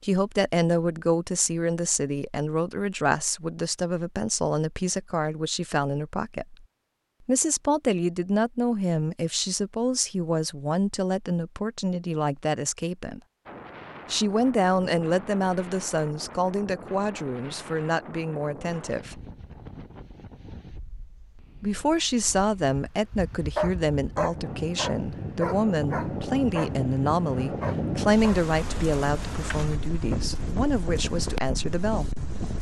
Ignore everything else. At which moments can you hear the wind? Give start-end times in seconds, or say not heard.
13.4-32.5.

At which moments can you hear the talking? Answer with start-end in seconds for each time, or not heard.
0.0-6.7, 7.2-13.2, 14.1-19.2, 21.6-32.1.